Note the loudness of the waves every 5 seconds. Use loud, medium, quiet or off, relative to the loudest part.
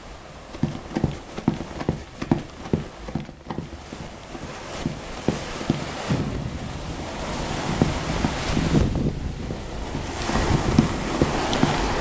quiet, loud, loud.